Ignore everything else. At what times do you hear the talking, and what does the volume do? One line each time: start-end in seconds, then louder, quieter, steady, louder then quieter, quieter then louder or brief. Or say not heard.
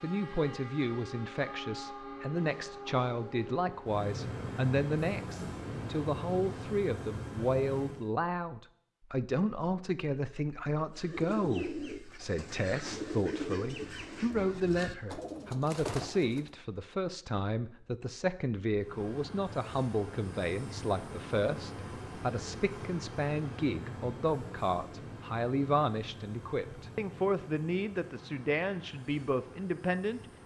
0.0-30.2 steady.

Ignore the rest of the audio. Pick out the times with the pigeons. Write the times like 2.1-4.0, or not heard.
10.9-16.5.